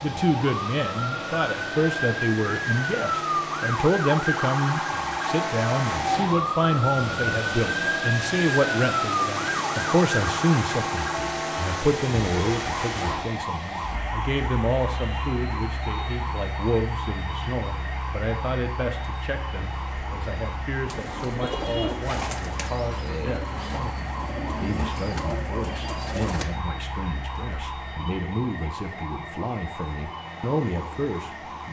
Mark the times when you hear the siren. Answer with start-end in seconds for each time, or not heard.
0.0-31.6.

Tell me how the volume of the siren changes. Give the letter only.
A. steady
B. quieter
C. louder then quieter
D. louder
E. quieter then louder
B.